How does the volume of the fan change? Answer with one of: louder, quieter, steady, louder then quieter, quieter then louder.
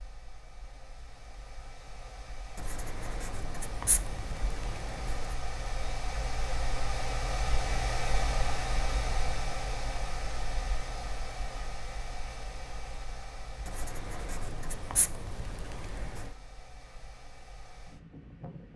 louder then quieter.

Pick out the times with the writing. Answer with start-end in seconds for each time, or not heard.
2.5-5.3, 13.7-16.4.